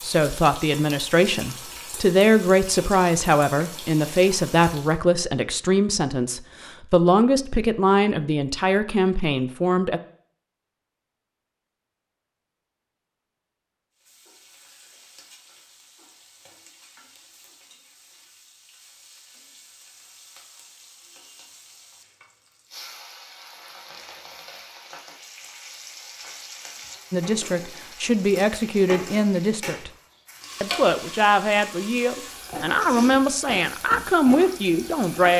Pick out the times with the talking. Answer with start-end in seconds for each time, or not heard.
0.0-10.0, 27.1-29.9, 30.6-35.3.